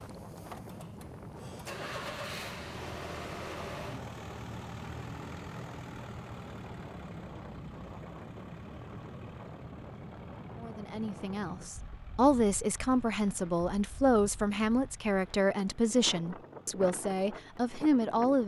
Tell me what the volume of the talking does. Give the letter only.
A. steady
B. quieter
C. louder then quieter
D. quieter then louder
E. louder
A.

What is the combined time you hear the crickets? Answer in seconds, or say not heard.
not heard.